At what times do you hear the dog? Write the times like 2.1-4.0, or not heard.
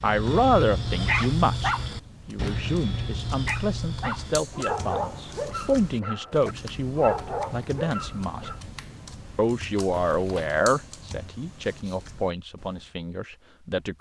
0.0-8.6.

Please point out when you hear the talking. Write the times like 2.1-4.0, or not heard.
0.0-8.5, 9.3-13.9.